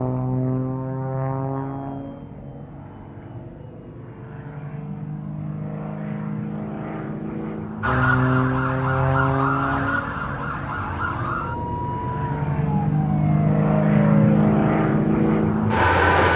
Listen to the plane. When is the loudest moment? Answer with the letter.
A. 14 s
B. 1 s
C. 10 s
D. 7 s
A.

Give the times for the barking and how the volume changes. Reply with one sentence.
You can't hear the barking here.